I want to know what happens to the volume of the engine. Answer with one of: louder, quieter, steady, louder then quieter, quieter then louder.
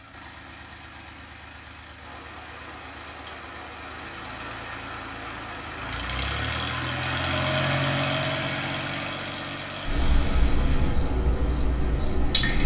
louder then quieter.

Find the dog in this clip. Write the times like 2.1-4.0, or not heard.
not heard.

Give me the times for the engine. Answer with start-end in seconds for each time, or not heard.
0.0-11.0.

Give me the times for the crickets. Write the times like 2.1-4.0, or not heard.
2.0-12.6.